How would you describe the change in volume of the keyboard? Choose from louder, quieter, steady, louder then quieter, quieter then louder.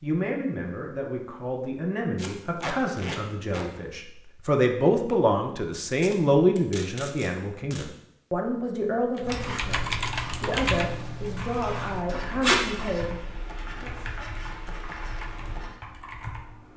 quieter.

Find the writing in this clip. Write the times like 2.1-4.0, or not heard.
9.2-15.8.